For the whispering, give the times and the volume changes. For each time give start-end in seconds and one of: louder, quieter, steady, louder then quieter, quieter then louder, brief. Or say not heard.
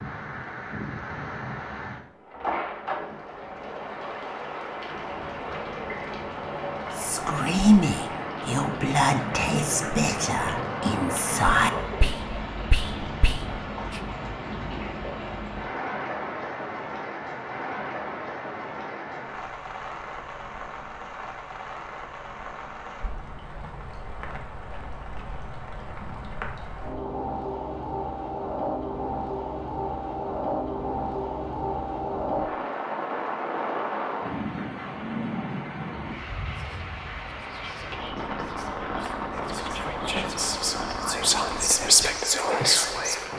7.0-14.0 quieter
36.5-43.3 louder.